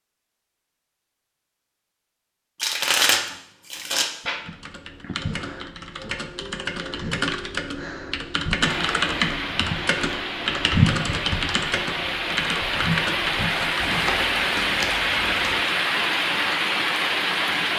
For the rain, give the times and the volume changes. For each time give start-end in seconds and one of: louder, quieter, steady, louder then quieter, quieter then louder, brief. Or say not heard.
8.6-17.7 louder.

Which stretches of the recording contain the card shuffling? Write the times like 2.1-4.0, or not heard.
2.6-4.4, 13.8-15.6.